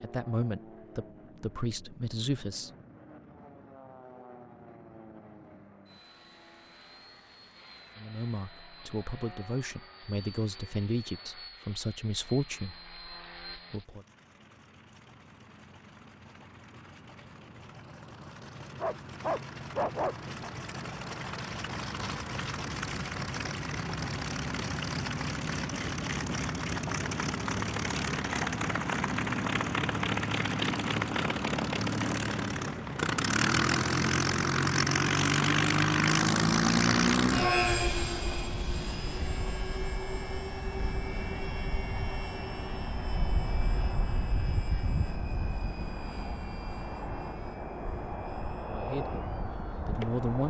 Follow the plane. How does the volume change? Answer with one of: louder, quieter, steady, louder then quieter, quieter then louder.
louder then quieter.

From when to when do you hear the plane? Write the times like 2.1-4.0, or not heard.
0.0-50.4.